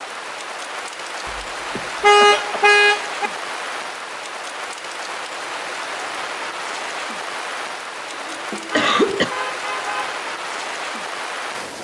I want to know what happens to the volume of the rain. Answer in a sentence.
The volume of the rain stays about the same.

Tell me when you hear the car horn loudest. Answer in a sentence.
The volume of the car horn peaks at 2 seconds.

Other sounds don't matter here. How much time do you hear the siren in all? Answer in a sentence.
You can't hear the siren here.